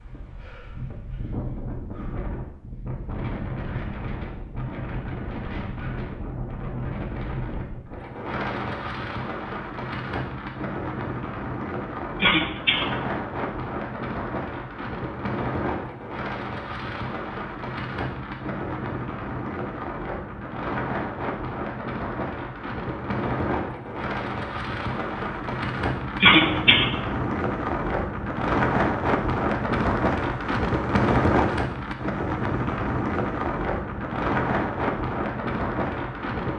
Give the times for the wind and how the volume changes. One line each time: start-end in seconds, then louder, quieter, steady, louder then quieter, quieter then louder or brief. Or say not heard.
0.0-36.5 louder.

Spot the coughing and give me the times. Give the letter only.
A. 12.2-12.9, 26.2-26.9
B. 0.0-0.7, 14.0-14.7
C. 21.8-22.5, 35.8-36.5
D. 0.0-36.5
A.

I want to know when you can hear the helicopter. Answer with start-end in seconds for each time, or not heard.
not heard.